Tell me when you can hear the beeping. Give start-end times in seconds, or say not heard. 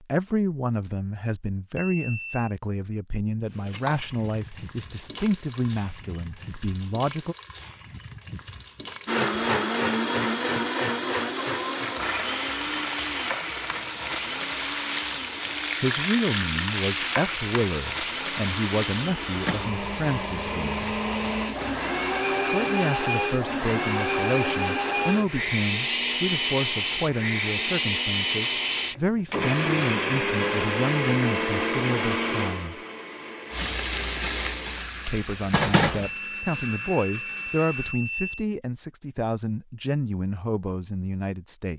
1.8-2.5, 36.0-38.5.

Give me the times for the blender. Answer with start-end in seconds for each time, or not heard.
9.1-38.0.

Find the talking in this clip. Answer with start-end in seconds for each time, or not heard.
0.0-7.3, 15.8-20.9, 22.4-32.8, 35.0-41.7.